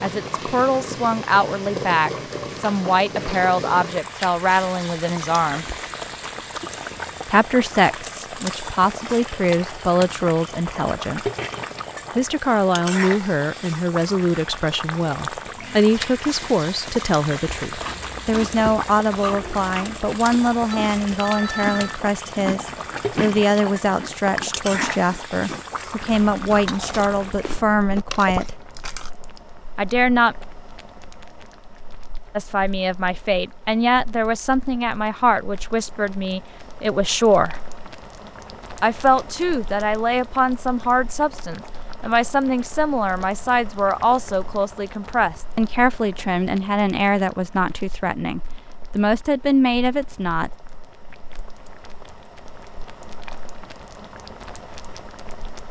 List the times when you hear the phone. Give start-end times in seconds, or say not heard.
20.7-22.0.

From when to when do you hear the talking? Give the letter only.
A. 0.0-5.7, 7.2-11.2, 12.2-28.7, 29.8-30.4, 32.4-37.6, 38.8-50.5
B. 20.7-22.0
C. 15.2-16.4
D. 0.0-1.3
A.